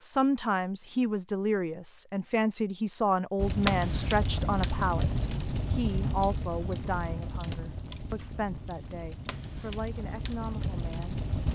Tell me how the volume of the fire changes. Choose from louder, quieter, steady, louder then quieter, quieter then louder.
quieter then louder.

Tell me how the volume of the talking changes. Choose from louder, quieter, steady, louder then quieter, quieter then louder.
quieter.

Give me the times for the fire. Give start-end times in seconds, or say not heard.
3.4-11.4.